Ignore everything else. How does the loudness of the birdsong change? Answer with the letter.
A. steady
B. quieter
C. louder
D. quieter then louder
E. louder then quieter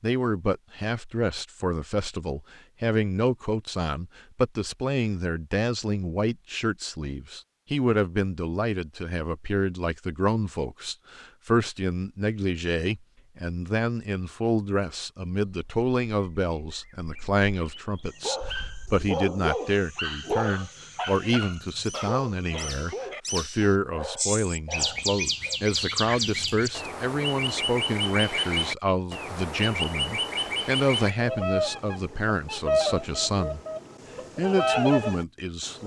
C.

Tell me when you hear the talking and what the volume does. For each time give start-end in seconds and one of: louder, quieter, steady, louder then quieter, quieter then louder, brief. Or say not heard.
0.0-33.6 steady
34.4-35.8 brief.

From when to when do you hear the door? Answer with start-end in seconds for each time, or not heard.
not heard.